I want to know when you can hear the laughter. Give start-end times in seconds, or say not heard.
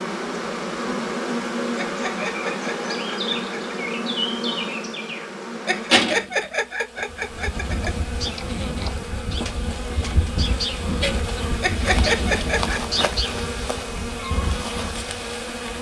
1.8-3.8, 5.7-7.9, 11.6-12.8.